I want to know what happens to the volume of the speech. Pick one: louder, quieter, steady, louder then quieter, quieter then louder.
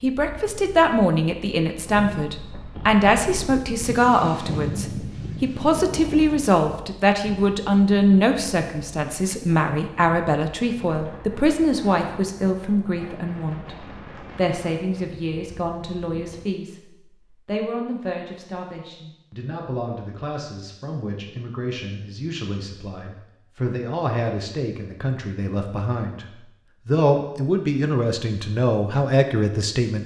quieter then louder.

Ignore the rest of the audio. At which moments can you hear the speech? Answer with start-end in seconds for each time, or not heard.
0.0-30.0.